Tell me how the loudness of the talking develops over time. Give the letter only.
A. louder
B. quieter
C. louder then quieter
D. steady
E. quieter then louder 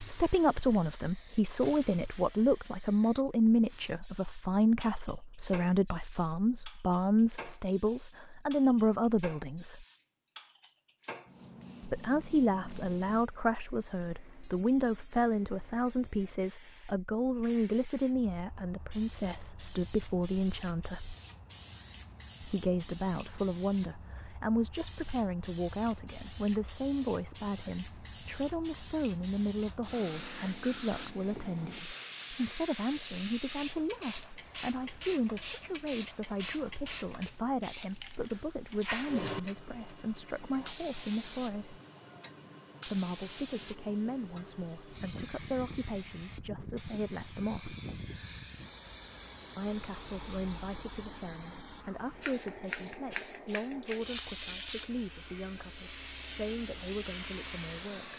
B.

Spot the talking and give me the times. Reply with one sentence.
You can hear the talking from 0.0 to 9.8 s, from 11.8 to 21.1 s, from 22.4 to 41.8 s, from 42.9 to 47.8 s and from 49.5 to 58.1 s.